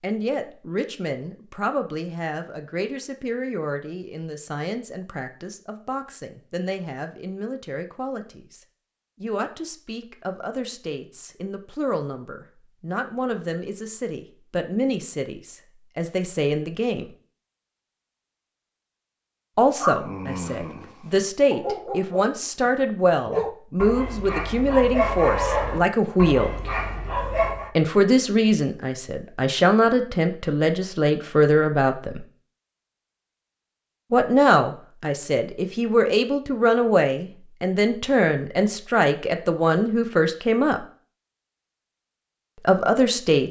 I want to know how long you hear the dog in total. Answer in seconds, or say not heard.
8 s.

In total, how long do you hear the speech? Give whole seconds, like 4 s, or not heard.
36 s.